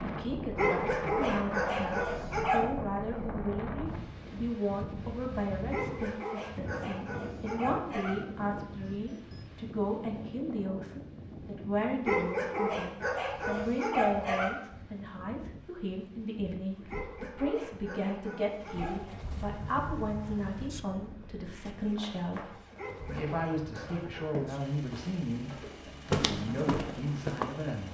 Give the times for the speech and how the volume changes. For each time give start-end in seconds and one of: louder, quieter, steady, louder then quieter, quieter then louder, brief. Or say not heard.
0.0-27.8 steady.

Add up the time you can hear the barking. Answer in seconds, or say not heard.
11 s.